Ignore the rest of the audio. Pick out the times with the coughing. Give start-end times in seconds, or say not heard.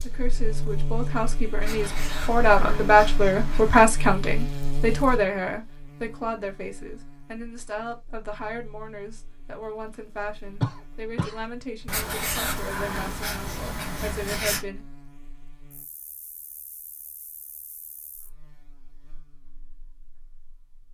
10.6-11.4.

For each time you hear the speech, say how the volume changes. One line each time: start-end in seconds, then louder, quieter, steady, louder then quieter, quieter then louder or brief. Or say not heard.
0.0-14.8 quieter.